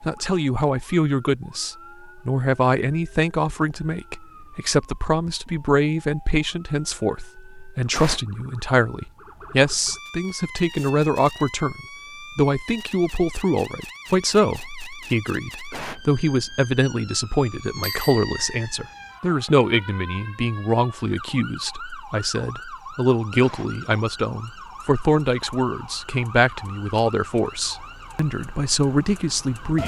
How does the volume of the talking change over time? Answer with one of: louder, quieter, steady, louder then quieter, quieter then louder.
steady.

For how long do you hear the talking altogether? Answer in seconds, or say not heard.
30 s.